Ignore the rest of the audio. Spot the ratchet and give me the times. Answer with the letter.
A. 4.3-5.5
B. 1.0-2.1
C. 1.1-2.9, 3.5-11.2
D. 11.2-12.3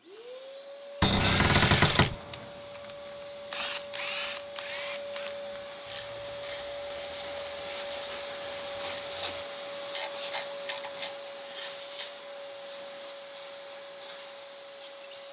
C.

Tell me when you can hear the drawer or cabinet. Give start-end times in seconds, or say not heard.
1.0-2.1.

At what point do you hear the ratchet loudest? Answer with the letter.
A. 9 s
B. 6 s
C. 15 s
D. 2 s
D.